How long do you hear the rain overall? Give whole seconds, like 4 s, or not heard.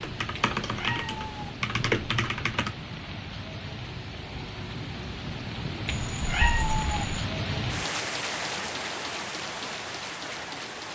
11 s.